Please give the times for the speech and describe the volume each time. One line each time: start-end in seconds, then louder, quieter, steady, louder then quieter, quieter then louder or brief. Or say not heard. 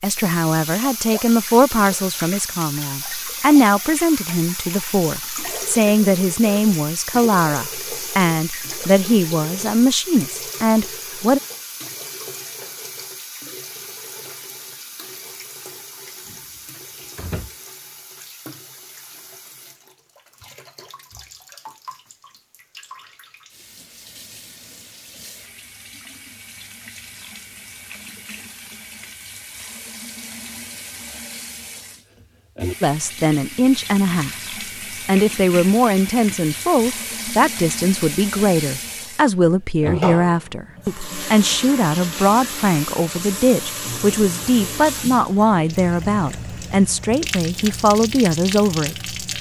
0.0-11.4 steady
32.8-34.4 brief
35.0-49.3 steady.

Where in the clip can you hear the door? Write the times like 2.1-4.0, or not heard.
16.6-17.5.